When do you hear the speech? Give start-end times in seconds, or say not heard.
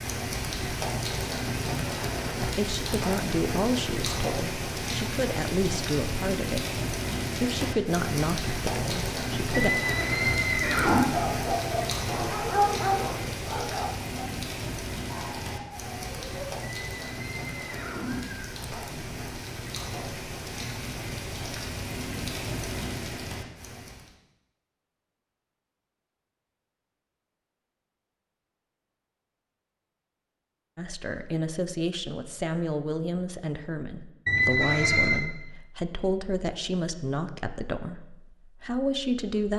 2.4-9.7, 30.8-39.5.